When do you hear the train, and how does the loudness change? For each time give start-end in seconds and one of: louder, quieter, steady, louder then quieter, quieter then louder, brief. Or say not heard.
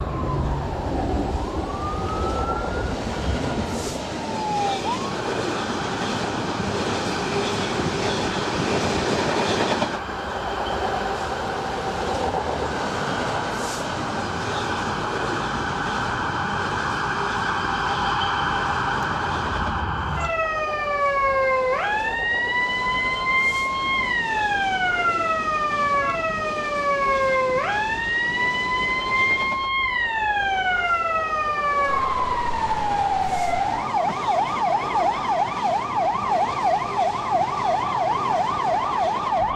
0.0-39.5 quieter.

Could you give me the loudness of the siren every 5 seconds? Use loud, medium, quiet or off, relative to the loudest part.
medium, medium, medium, loud, loud, loud, loud, loud.